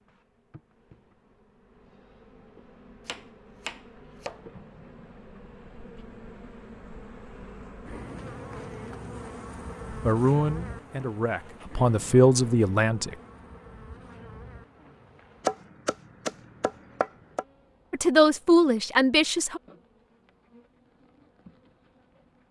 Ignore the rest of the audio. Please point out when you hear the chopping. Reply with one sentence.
The chopping can be heard from 3.0 to 4.5 s and from 15.4 to 17.4 s.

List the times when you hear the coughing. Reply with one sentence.
The coughing can't be heard in this clip.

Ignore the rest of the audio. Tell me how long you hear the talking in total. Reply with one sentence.
The talking can be heard for 5 seconds in total.